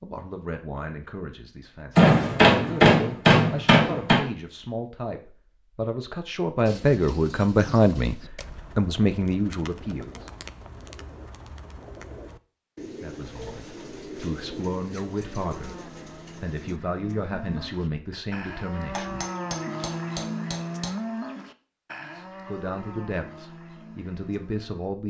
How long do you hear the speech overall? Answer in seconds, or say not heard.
19 s.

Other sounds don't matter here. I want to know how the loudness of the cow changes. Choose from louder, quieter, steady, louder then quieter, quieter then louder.
louder then quieter.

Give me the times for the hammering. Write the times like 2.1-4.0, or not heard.
1.9-4.2, 18.9-20.9.